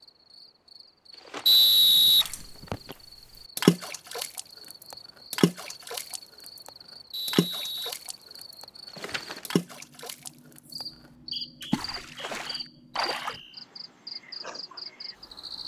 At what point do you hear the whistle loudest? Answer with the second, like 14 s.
2 s.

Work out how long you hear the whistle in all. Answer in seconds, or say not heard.
5 s.